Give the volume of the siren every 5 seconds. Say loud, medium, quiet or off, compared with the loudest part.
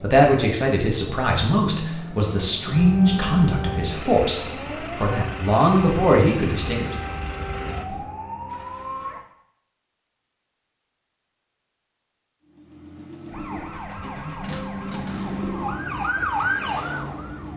medium, medium, medium, loud.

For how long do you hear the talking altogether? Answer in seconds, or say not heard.
7 s.